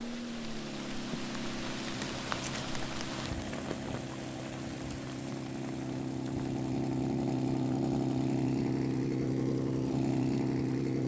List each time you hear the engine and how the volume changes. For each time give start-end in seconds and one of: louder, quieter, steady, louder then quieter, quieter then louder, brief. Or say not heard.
0.0-11.0 louder.